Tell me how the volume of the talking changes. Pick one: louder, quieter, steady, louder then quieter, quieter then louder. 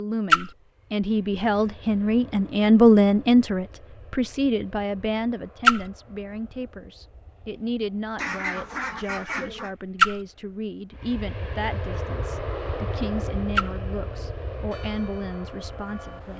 quieter.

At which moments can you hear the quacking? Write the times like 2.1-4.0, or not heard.
8.2-9.8.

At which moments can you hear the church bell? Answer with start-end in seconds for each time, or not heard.
14.7-16.3.